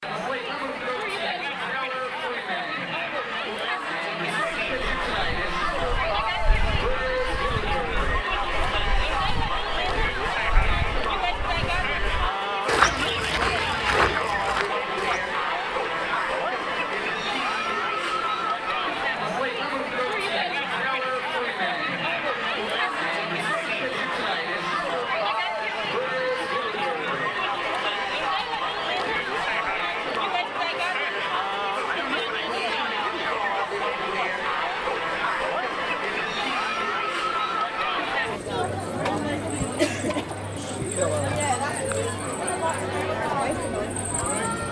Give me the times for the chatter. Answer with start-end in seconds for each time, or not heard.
0.0-44.6.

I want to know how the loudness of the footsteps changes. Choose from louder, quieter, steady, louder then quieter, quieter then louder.
louder.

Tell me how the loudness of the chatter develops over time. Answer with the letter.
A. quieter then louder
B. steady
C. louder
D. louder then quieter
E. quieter
B.